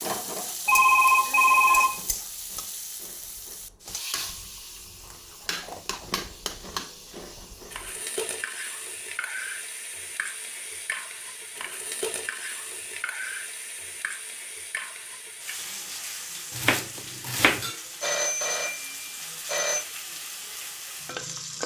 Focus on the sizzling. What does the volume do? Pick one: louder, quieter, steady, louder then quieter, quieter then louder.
steady.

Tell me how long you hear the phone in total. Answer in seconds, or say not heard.
3 s.